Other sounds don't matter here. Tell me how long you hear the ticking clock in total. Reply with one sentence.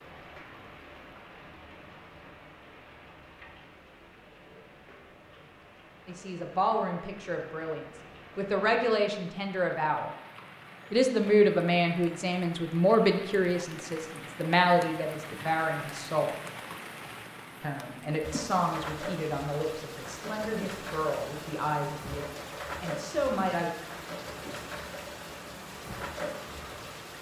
You can't hear the ticking clock here.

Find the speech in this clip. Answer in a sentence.
You can hear the speech from 6.0 to 10.1 s, from 10.9 to 16.4 s and from 17.6 to 23.7 s.